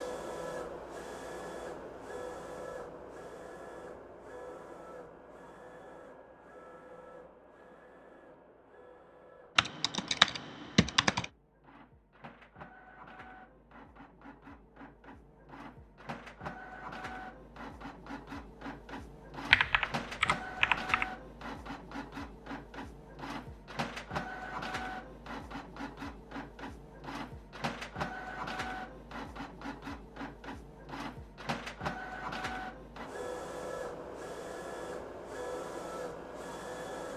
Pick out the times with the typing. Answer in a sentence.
The typing can be heard from 9.6 to 11.2 s and from 19.5 to 21.1 s.